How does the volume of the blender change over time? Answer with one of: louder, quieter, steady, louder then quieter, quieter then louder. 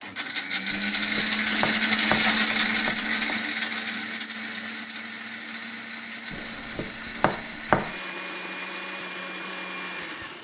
quieter.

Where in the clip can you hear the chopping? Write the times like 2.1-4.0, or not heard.
0.7-3.4, 6.3-8.0.